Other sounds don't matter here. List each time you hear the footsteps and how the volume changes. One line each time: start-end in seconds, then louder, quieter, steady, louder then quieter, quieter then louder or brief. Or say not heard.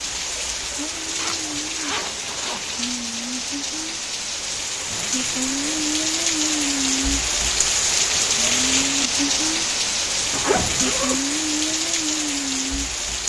not heard.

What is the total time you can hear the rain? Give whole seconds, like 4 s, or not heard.
13 s.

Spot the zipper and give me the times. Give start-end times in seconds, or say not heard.
1.1-2.8, 4.8-5.8, 10.3-11.2.